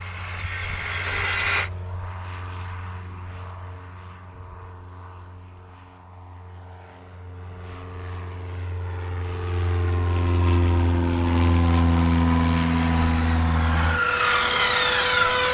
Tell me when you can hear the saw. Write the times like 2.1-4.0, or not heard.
0.0-1.7, 12.5-15.5.